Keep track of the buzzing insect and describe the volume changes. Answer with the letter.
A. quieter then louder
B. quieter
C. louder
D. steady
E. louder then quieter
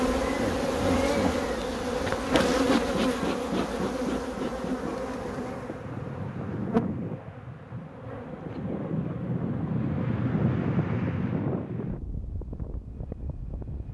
B.